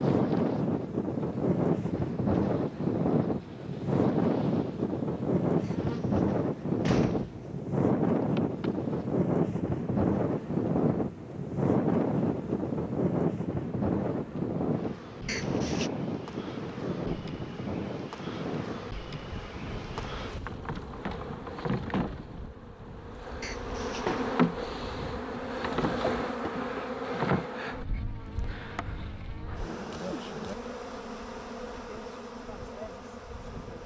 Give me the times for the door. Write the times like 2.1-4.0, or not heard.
5.7-7.3, 15.2-15.9, 23.4-24.4.